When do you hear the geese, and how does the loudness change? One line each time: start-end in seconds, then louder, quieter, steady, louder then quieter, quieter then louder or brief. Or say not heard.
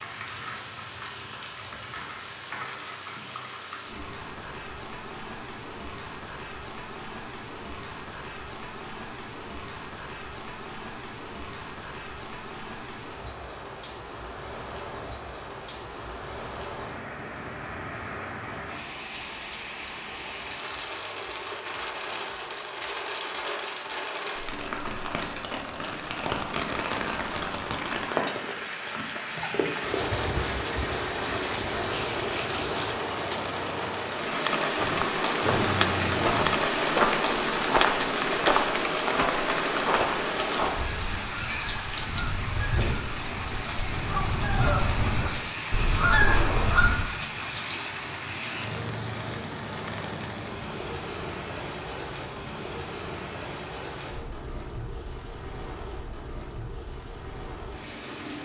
40.6-47.0 louder.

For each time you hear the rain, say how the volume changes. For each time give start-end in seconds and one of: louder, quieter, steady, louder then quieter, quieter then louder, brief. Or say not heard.
0.0-58.4 louder then quieter.